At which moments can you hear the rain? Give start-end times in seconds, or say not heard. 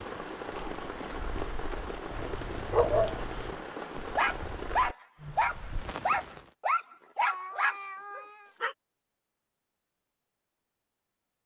0.0-6.5.